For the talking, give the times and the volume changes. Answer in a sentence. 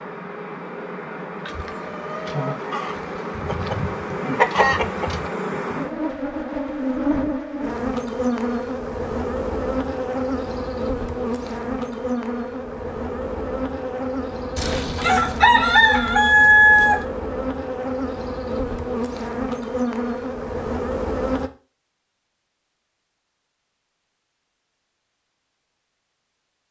The talking can't be heard in this clip.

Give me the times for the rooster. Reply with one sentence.
You can hear the rooster from 1.4 to 5.3 s and from 14.6 to 17.1 s.